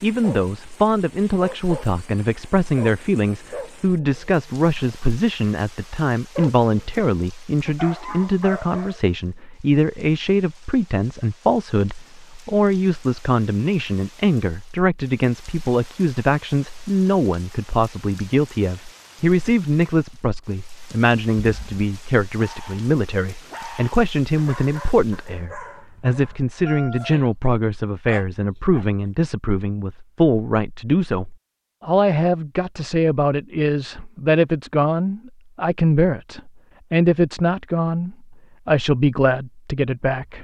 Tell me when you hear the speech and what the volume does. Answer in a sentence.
You can hear the speech from 0.0 to 40.4 s, at a steady volume.